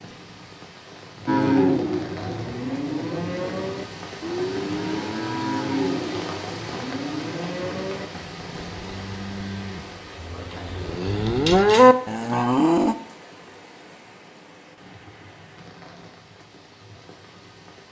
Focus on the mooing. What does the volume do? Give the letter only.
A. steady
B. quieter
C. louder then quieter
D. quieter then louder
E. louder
D.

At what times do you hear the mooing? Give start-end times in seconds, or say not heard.
1.2-12.9.